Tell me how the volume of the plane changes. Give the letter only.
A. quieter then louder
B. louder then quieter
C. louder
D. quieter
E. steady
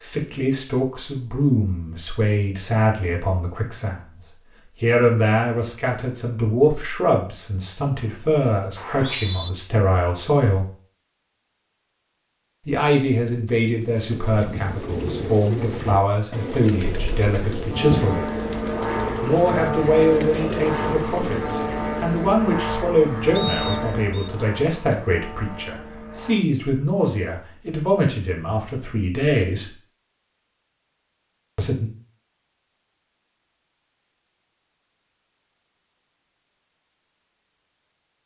D.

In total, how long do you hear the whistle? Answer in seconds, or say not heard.
2 s.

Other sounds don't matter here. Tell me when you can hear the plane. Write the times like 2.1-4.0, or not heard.
16.9-26.4.